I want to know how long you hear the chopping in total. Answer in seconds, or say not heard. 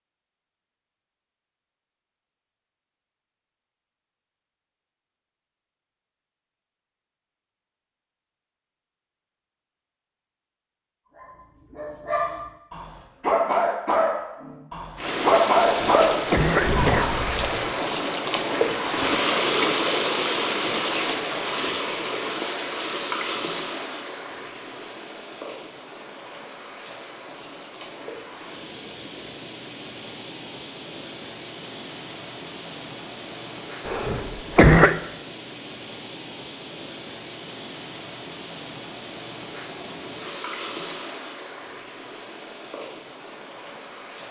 not heard.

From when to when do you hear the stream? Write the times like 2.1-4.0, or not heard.
14.9-44.2.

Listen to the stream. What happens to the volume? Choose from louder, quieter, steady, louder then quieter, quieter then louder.
quieter.